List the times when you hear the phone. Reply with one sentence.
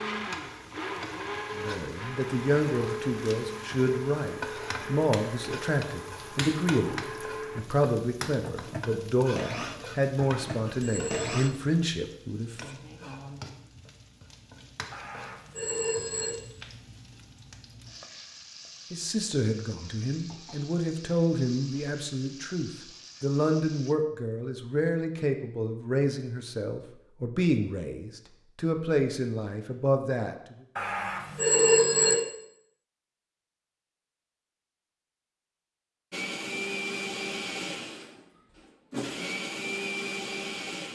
The phone can be heard from 10.2 to 11.6 s, from 14.9 to 16.4 s and from 30.8 to 32.1 s.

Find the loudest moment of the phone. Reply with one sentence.
The volume of the phone peaks at 32 seconds.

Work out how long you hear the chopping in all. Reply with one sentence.
You can't hear the chopping here.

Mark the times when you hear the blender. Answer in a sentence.
The blender can be heard from 0.0 to 11.5 s and from 36.1 to 40.9 s.